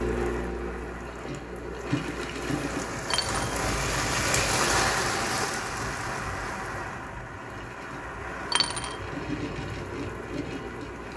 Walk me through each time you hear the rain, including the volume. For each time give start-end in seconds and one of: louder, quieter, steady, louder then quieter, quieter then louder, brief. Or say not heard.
0.0-11.1 louder then quieter.